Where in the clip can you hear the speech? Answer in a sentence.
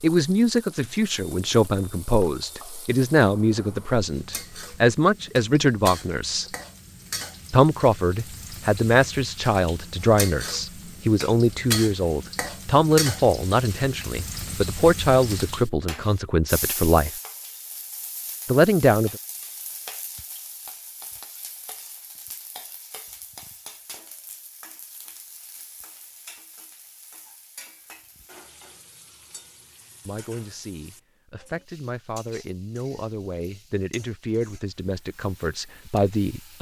The speech can be heard from 0.0 to 6.5 s, from 7.5 to 17.1 s, from 18.4 to 19.1 s and from 30.1 to 36.5 s.